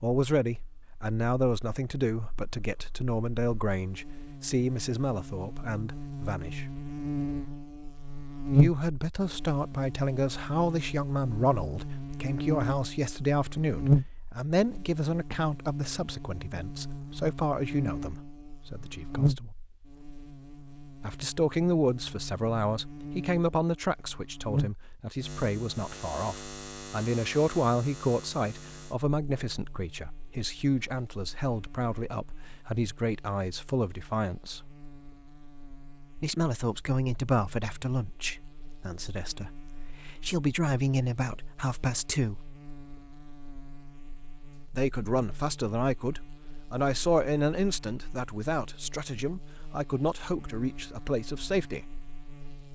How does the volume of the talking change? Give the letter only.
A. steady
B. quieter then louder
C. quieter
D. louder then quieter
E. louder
A.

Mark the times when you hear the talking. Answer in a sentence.
The talking can be heard from 0.0 to 6.7 s, from 8.5 to 19.5 s, from 21.0 to 34.8 s, from 36.1 to 42.5 s and from 44.7 to 52.0 s.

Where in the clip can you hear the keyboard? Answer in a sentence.
The keyboard can't be heard in this clip.